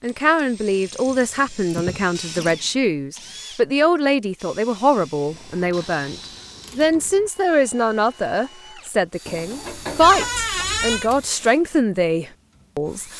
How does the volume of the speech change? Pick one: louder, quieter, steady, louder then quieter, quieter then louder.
steady.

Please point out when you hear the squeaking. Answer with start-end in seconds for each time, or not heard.
10.0-11.1.